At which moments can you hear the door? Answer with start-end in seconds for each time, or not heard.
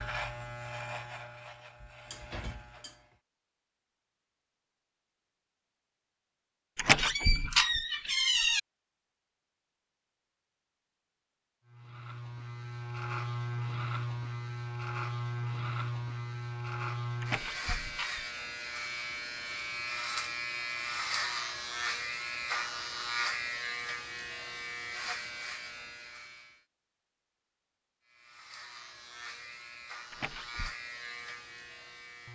6.8-8.6, 17.2-18.2, 30.1-30.8.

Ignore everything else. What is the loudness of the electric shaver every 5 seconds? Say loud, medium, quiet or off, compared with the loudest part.
medium, off, loud, loud, loud, medium, medium.